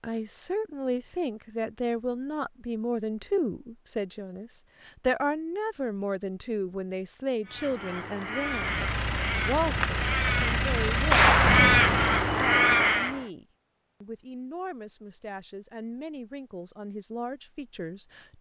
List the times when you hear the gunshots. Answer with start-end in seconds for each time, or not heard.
8.8-10.3, 11.1-11.7.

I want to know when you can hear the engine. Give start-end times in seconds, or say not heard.
8.3-12.5.